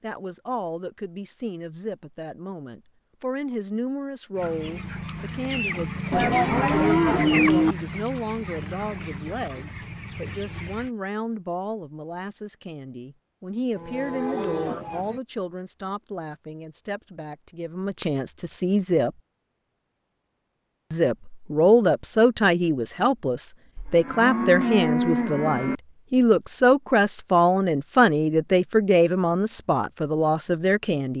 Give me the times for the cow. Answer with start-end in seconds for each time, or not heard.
6.1-7.8, 13.8-15.2, 23.8-25.8.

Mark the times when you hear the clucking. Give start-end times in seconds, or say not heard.
4.3-10.9.